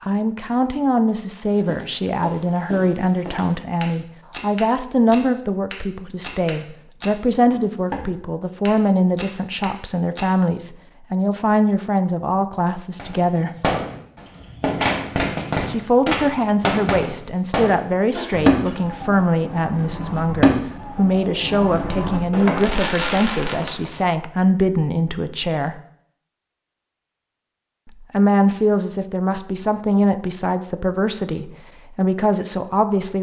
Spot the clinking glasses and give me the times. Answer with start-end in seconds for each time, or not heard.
not heard.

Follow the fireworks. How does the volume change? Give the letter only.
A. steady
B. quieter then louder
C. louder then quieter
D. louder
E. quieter
A.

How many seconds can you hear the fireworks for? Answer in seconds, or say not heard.
11 s.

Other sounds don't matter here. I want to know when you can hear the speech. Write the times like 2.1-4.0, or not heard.
0.0-13.5, 15.7-25.8, 28.0-33.1.